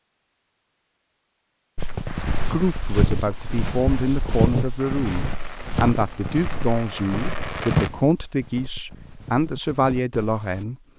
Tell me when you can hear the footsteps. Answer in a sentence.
You can hear the footsteps from 1.8 to 10.7 s.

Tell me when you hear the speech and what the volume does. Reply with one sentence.
The speech can be heard from 2.5 to 10.8 s, at a steady volume.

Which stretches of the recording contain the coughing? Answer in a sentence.
You can't hear the coughing here.